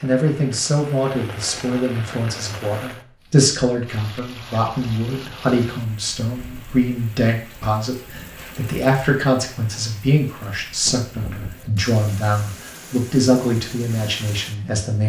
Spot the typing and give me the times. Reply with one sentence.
The typing can't be heard in this clip.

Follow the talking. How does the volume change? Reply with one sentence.
The volume of the talking stays about the same.